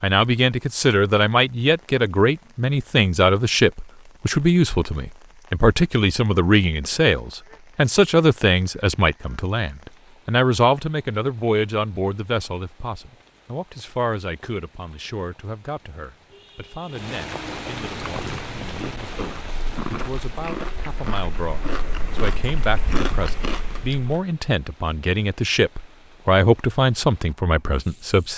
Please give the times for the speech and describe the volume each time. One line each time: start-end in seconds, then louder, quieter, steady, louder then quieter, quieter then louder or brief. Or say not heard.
0.0-28.3 quieter then louder.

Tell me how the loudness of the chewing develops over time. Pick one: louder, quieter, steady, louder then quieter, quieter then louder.
louder.